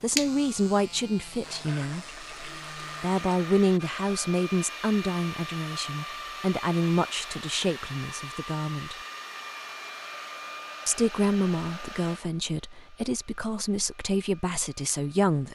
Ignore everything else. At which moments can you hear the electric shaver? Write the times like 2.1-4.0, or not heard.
0.0-3.1.